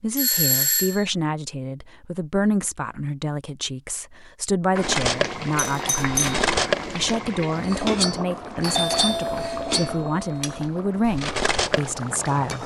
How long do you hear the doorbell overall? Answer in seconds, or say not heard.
4 s.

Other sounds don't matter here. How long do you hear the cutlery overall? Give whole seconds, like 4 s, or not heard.
7 s.